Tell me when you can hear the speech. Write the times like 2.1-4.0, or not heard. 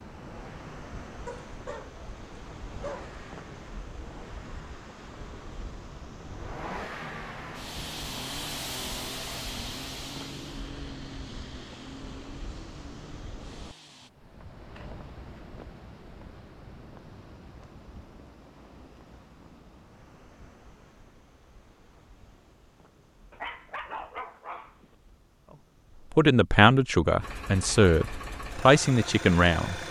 26.1-29.8.